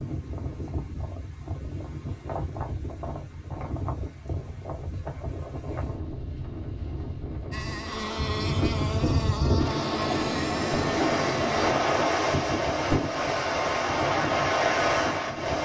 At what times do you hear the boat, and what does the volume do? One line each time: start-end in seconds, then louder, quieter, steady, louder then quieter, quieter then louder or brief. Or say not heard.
7.5-11.8 steady.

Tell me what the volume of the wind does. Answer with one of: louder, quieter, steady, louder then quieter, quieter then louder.
louder.